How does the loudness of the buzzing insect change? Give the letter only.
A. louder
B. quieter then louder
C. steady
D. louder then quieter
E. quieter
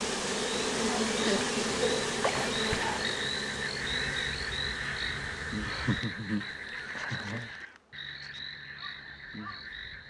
E.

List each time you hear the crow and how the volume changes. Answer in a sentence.
The crow can be heard from 3.8 to 9.7 s, getting quieter.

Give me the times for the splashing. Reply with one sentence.
You can hear the splashing from 2.2 to 3.0 s and from 7.0 to 7.8 s.